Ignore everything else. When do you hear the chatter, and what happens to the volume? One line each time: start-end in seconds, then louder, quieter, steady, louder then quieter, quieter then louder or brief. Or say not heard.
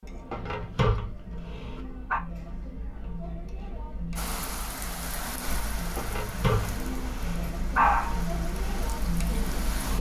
0.0-9.9 louder.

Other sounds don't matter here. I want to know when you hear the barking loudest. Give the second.
8 s.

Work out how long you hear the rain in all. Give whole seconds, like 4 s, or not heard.
6 s.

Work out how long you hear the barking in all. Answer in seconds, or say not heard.
4 s.